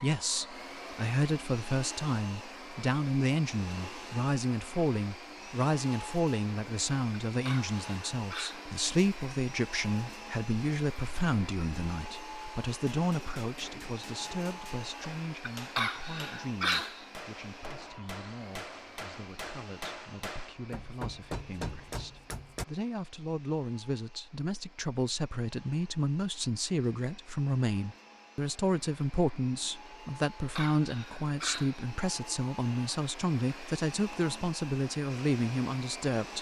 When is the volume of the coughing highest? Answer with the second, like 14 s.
17 s.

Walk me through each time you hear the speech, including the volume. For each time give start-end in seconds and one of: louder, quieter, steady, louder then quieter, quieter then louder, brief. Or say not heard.
0.0-36.3 quieter then louder.